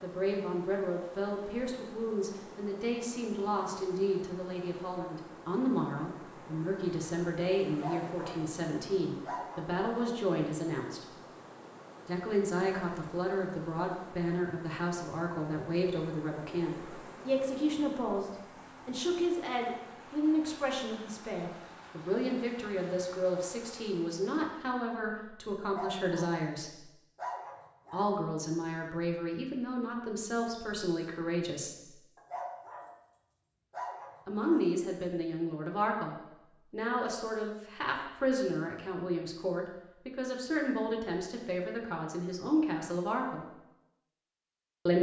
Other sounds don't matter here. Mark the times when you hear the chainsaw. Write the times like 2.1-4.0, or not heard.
not heard.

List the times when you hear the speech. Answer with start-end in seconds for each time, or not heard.
0.0-11.1, 12.1-26.8, 27.9-31.9, 34.2-43.5.